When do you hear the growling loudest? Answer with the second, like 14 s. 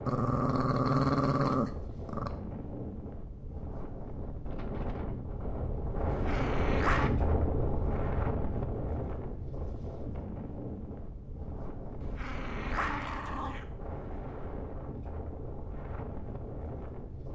1 s.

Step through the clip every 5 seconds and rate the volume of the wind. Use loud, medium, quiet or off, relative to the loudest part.
medium, loud, medium, medium.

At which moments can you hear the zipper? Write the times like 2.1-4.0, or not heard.
not heard.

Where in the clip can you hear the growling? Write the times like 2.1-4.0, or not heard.
0.1-2.3, 6.0-7.1, 12.0-13.7.